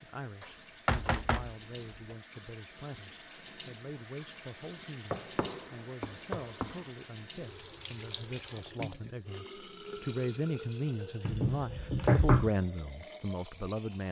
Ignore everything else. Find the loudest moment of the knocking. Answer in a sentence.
The loudest moment of the knocking is at 12 seconds.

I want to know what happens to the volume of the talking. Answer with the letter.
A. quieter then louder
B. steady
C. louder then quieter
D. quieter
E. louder
E.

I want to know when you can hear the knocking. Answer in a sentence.
The knocking can be heard from 0.4 to 2.1 s, from 5.1 to 6.9 s and from 11.2 to 12.5 s.